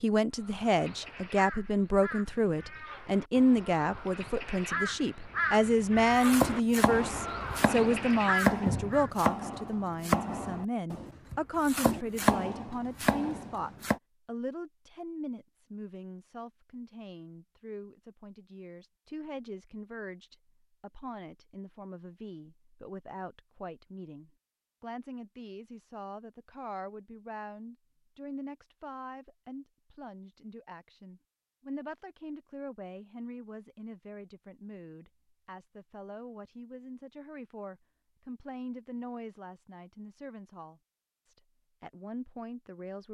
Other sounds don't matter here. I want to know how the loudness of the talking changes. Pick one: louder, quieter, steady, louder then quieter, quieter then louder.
quieter.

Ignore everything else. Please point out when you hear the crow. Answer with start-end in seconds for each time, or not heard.
0.3-9.1.